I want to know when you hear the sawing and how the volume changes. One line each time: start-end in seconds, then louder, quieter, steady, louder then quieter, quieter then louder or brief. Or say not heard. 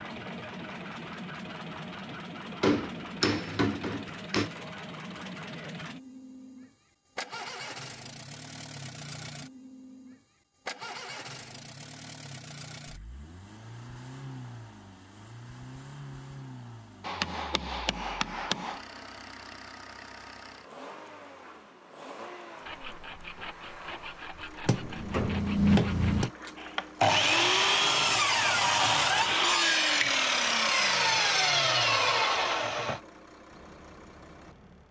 22.6-33.0 louder.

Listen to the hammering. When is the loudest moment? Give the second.
26 s.